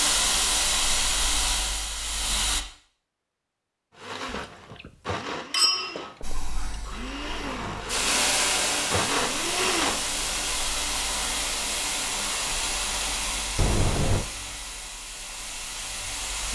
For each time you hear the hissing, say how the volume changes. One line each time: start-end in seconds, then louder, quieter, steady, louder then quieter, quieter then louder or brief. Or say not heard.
0.0-2.6 brief
6.2-16.5 quieter.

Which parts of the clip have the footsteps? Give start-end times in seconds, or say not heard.
not heard.